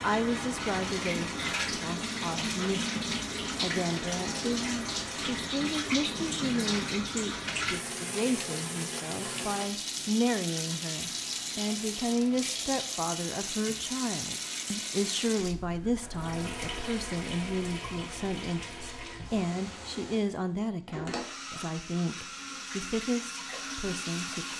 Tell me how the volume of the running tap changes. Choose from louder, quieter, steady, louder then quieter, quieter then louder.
quieter.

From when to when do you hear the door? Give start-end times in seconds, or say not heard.
not heard.